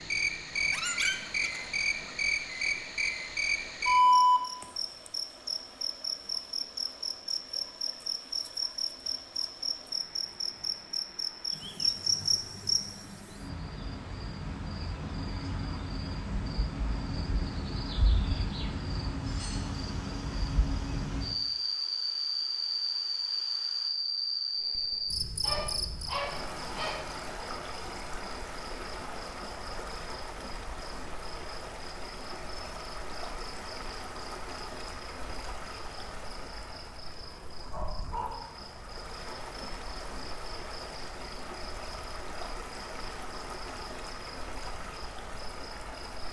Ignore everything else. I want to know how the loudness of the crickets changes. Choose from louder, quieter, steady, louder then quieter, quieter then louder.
quieter.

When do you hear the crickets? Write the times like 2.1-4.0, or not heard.
0.0-46.2.